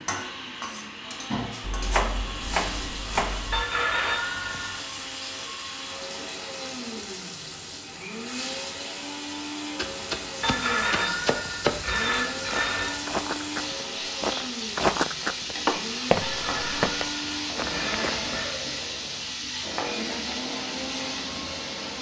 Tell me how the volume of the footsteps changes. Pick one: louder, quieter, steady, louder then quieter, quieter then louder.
louder then quieter.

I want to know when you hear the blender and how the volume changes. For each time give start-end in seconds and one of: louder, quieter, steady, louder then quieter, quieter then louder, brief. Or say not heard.
0.0-21.9 steady.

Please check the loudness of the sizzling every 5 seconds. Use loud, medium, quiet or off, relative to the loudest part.
medium, medium, loud, loud, loud.